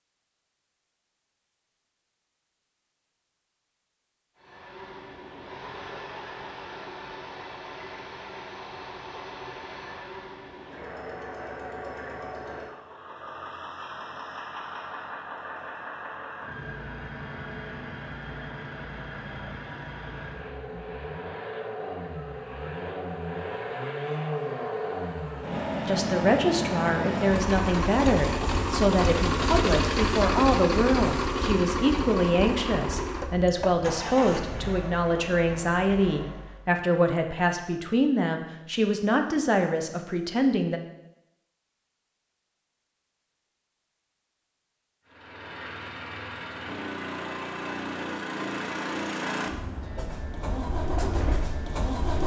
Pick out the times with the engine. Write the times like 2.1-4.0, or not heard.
4.3-36.6, 45.0-52.2.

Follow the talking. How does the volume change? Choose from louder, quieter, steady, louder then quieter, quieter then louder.
steady.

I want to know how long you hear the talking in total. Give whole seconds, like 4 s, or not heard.
15 s.